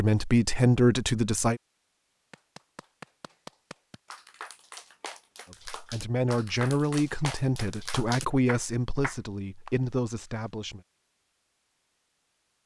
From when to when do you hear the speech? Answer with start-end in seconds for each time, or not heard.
0.0-1.6, 5.5-10.8.